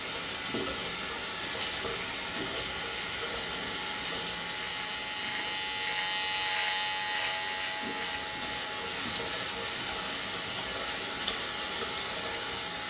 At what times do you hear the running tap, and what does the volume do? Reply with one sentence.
You can hear the running tap from 0.0 to 12.8 s, getting quieter then louder.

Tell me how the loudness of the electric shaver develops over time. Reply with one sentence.
The volume of the electric shaver goes up, then down.